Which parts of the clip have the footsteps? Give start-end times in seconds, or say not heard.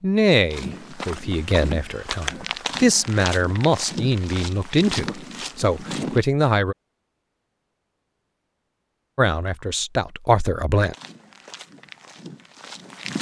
0.5-6.2, 10.9-13.1.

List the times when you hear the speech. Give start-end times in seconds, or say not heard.
0.0-6.8, 9.2-10.9.